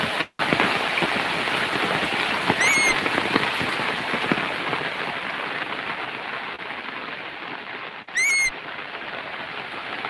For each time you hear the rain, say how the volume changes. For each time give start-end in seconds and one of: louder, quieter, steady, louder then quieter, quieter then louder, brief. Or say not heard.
0.0-10.0 quieter.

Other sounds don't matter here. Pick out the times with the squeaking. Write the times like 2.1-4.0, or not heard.
2.5-3.0, 8.2-8.6.